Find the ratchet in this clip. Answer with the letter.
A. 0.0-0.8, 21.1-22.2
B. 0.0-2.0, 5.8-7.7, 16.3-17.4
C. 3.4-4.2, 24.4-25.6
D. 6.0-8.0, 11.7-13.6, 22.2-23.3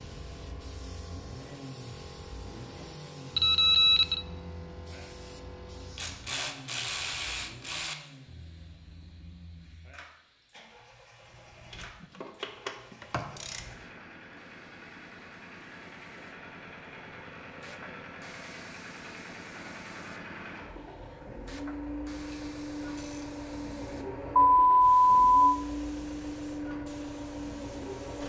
D.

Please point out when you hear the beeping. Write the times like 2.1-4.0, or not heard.
3.4-4.2, 24.4-25.6.